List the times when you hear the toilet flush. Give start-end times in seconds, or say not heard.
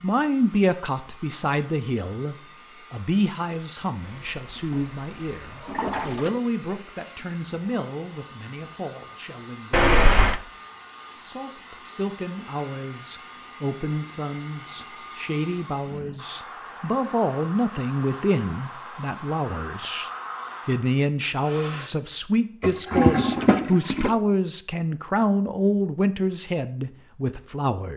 4.0-6.3, 9.7-10.4, 22.6-24.1.